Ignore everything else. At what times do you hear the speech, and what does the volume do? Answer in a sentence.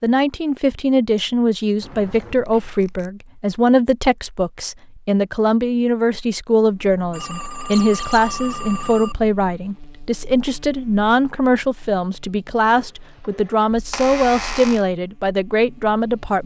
The speech can be heard from 0.0 to 16.4 s, at a steady volume.